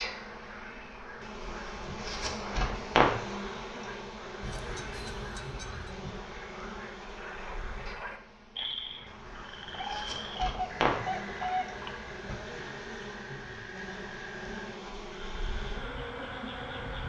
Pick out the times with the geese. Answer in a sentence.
The geese can be heard from 4.4 to 6.0 s and from 9.7 to 12.6 s.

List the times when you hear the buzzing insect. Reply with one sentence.
You can hear the buzzing insect from 0.0 to 17.0 s.